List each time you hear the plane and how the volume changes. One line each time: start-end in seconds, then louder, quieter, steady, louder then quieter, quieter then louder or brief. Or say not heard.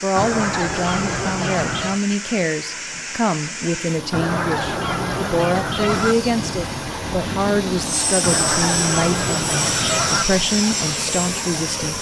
5.8-11.9 louder.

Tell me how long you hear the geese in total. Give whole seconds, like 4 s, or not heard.
6 s.